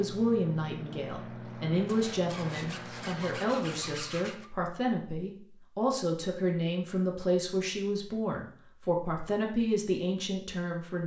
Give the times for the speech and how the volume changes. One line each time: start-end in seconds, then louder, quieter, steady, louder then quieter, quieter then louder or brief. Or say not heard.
0.0-11.0 steady.